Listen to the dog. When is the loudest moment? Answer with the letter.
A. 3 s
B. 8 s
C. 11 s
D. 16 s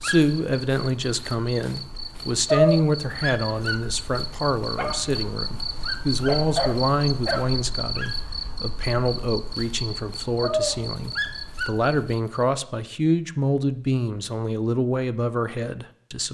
A.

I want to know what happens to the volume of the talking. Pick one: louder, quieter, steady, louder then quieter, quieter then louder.
steady.